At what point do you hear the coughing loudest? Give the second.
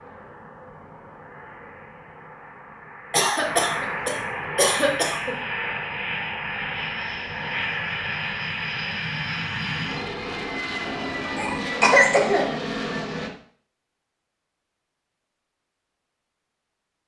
12 s.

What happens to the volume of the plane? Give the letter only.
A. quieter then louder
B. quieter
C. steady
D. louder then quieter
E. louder
E.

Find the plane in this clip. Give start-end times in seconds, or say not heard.
0.0-13.3.